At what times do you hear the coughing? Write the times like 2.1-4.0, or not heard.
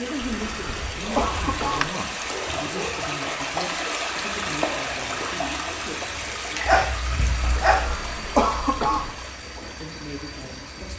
0.2-1.9, 7.4-9.2.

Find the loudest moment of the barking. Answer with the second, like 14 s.
7 s.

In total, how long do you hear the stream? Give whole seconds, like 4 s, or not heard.
11 s.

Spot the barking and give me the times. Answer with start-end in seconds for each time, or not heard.
1.0-3.0, 6.7-8.0.